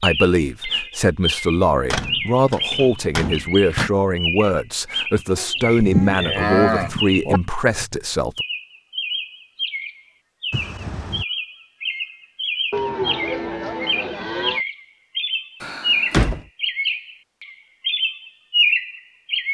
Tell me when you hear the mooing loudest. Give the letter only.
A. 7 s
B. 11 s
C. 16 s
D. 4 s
A.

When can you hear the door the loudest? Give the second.
16 s.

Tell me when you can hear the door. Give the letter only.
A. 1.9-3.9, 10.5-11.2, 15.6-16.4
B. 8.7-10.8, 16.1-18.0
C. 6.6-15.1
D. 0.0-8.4
A.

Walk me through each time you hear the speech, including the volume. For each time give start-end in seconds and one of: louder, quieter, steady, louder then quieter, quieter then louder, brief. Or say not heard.
0.0-8.4 steady.